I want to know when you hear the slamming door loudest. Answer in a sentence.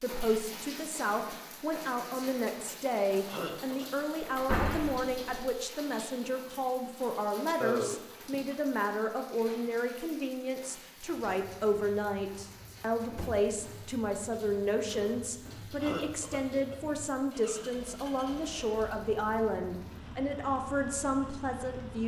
The volume of the slamming door peaks at 5 seconds.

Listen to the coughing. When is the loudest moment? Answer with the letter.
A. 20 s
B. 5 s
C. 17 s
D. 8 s
D.